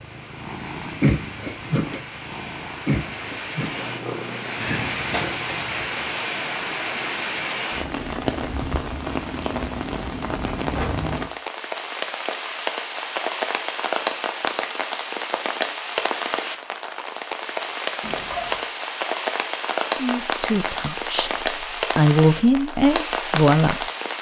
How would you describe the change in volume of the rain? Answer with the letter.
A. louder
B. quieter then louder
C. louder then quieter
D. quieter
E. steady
A.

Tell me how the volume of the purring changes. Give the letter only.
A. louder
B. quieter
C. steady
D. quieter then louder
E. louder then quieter
B.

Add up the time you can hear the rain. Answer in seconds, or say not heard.
24 s.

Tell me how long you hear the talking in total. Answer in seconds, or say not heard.
4 s.